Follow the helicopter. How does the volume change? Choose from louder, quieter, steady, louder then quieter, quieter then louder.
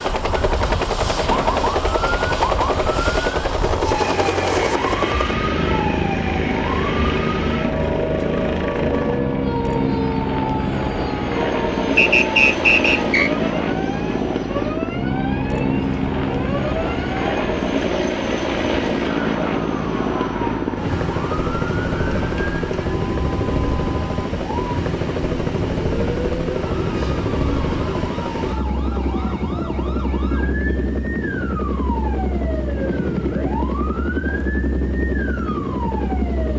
steady.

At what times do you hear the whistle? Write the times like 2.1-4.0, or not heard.
11.9-13.3.